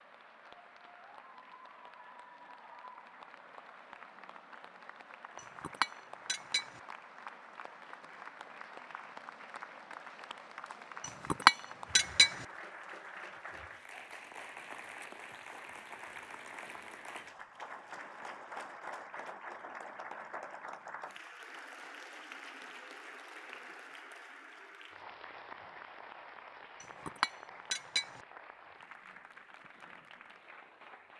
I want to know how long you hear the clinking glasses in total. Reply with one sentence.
You can hear the clinking glasses for 4 seconds altogether.